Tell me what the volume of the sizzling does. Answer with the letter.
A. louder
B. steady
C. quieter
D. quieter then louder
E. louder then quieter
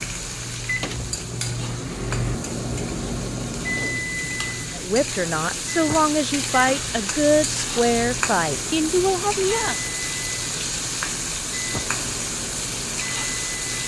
A.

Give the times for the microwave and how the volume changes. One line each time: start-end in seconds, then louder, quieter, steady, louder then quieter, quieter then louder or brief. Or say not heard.
0.0-13.8 quieter.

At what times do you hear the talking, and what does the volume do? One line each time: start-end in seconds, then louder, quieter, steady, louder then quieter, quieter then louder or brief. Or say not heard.
4.8-9.8 steady.